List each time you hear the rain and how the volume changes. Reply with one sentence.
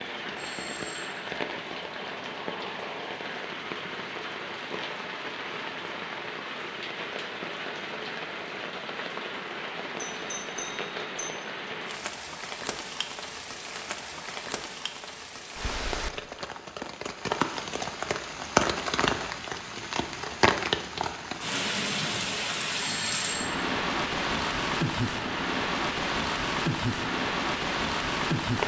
The rain can be heard from 0.0 to 28.6 s, getting louder.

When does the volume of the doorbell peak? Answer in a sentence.
The loudest moment of the doorbell is at 23 seconds.